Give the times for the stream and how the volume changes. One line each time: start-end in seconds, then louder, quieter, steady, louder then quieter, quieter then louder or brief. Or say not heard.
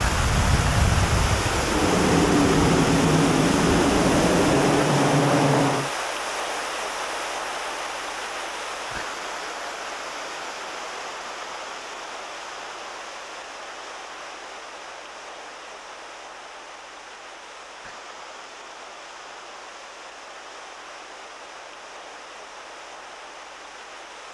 0.0-24.2 quieter.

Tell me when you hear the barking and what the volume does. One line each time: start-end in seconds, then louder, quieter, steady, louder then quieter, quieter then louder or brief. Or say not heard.
not heard.